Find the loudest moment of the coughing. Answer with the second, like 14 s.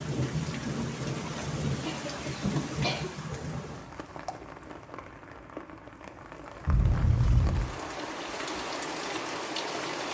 7 s.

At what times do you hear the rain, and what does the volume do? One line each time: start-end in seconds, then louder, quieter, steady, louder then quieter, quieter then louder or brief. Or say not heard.
0.0-10.1 quieter then louder.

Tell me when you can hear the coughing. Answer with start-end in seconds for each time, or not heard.
1.9-3.1, 6.7-7.7.